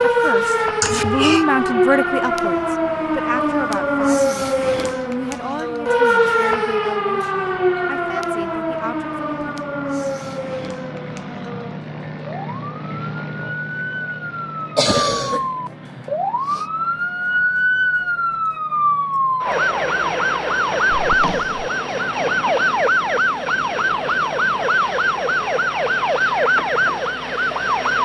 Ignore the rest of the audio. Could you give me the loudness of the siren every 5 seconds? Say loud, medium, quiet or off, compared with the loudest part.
loud, loud, medium, loud, loud, loud.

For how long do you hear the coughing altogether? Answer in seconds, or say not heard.
3 s.